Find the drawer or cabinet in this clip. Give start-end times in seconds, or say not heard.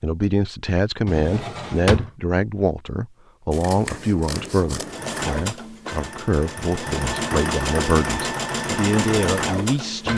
1.1-2.1.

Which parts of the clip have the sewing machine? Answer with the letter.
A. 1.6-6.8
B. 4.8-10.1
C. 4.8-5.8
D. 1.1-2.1
B.